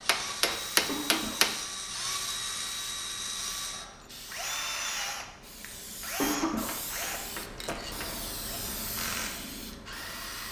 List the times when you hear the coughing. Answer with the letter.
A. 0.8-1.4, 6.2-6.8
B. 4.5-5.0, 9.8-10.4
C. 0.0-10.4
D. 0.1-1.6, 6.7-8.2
A.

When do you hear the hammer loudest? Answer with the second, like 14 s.
1 s.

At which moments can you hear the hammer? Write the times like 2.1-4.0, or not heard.
0.1-1.6, 6.7-8.2.